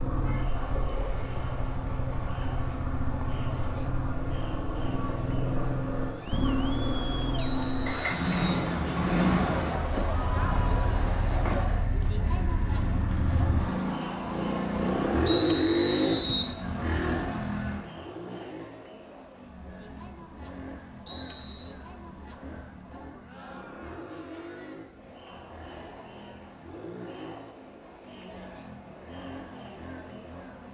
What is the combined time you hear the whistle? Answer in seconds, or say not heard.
3 s.